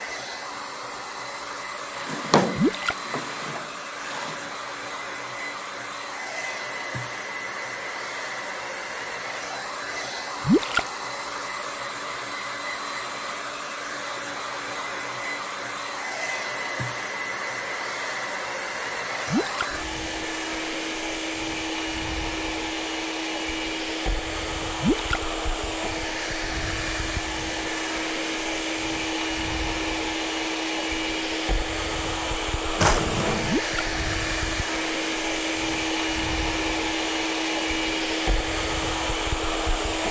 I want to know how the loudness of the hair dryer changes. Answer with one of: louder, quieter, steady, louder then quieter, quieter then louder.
louder.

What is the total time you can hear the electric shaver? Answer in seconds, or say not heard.
not heard.